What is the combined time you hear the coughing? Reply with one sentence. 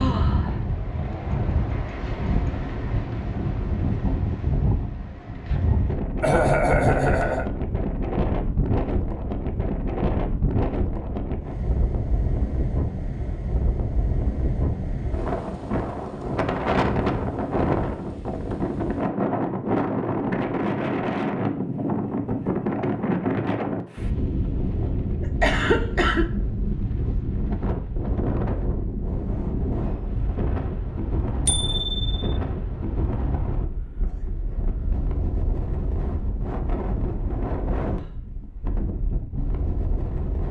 You can hear the coughing for 2 seconds altogether.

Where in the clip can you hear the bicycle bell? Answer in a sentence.
You can hear the bicycle bell from 31.4 to 32.4 s.